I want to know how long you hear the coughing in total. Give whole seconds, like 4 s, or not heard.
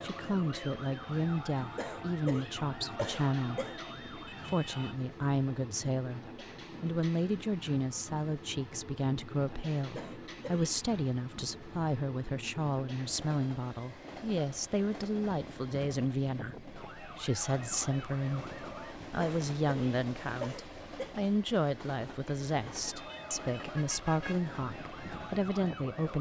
5 s.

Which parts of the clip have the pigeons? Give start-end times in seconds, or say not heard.
not heard.